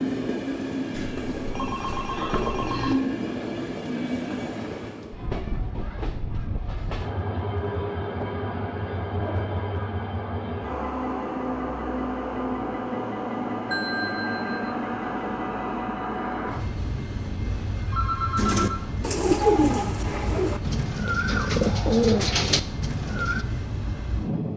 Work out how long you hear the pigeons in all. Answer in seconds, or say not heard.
5 s.